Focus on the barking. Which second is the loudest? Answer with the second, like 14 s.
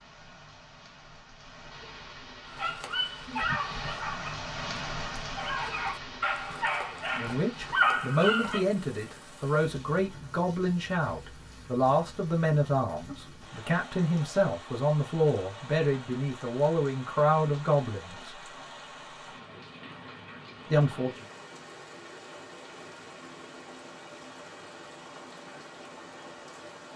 8 s.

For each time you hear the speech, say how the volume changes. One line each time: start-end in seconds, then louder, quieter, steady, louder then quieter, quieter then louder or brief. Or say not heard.
6.9-18.4 steady
20.7-21.2 brief.